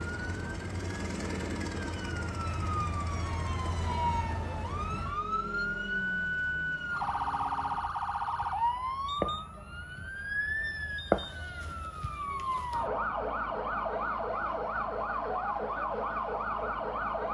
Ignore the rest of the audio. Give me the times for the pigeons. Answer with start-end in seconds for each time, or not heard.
not heard.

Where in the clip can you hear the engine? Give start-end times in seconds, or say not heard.
0.0-8.0.